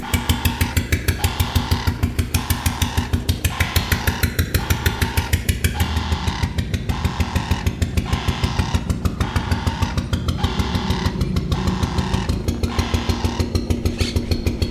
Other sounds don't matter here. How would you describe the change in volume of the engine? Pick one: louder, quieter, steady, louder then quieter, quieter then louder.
steady.